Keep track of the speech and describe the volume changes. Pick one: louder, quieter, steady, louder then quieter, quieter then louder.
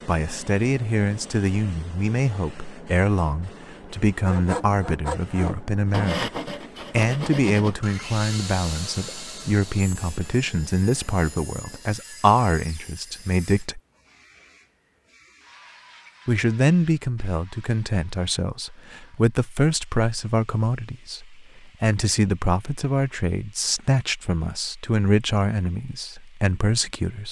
steady.